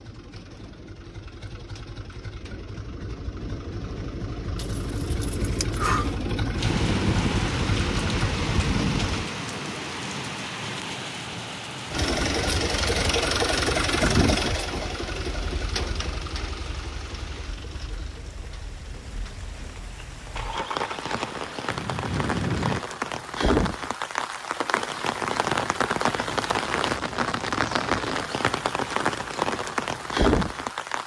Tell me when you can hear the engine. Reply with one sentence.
You can hear the engine from 0.0 to 9.2 s and from 11.9 to 22.9 s.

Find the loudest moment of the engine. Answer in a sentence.
The volume of the engine peaks at 14 seconds.